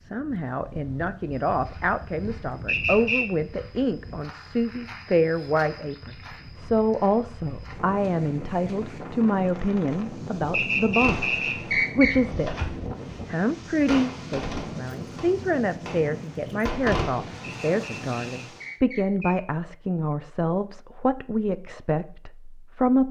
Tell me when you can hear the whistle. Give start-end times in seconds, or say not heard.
2.6-3.2, 10.5-12.2, 17.6-19.4.